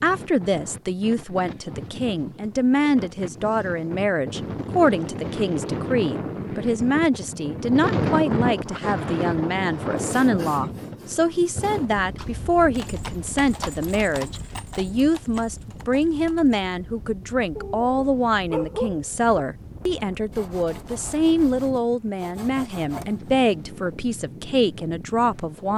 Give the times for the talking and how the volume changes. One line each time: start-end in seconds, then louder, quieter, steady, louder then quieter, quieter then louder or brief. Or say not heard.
0.0-25.7 steady.